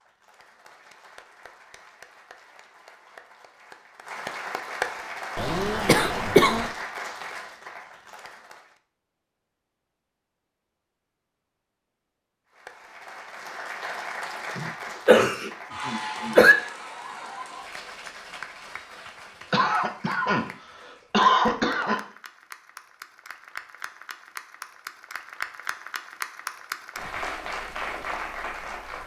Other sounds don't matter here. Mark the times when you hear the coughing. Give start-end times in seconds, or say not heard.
5.3-6.7, 14.6-16.6, 19.5-22.0.